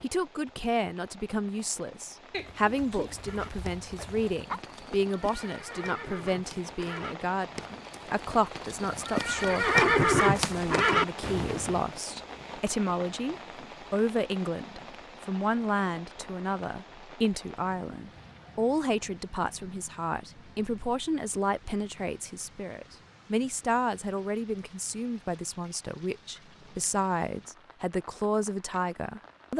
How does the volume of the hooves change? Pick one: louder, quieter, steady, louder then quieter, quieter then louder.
louder.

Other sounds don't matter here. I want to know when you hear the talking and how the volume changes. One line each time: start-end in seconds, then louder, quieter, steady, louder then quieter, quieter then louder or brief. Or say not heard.
0.0-29.5 steady.